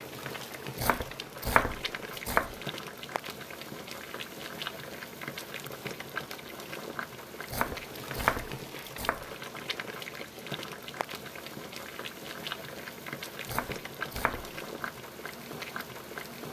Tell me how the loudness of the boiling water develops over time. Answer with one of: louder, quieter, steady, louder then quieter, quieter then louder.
steady.